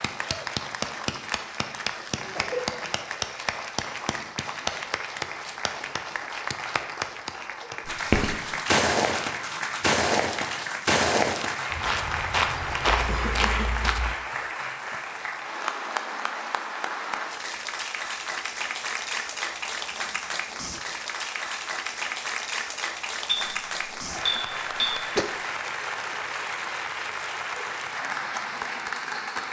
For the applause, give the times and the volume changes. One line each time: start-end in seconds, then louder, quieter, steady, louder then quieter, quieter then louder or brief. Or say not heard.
0.0-29.4 steady.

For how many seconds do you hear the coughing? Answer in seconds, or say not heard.
3 s.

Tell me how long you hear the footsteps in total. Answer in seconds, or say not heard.
6 s.